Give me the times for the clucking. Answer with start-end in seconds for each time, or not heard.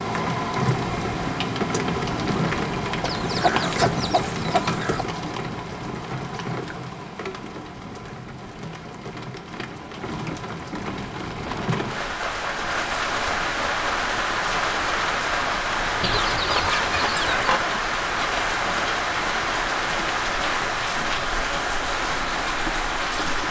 3.0-5.0, 16.0-17.6.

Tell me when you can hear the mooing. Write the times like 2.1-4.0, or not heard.
not heard.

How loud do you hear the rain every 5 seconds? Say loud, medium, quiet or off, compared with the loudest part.
loud, medium, loud, loud, loud.